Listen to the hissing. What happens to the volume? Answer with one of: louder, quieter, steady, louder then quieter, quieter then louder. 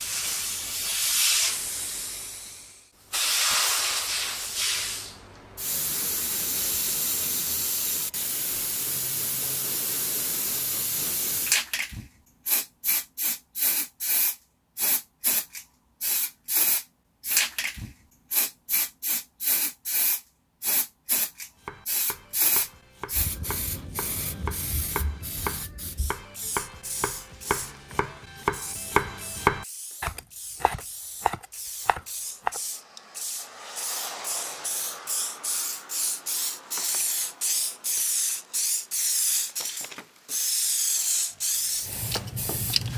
quieter then louder.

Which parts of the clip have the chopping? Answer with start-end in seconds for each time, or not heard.
21.6-32.6, 41.4-42.8.